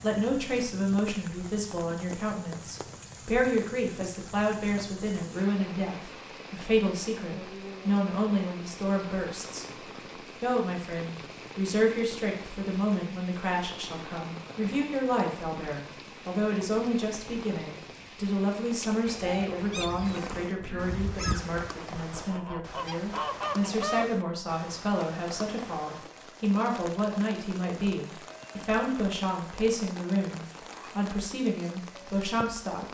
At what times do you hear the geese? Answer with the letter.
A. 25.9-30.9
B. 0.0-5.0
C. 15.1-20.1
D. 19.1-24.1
D.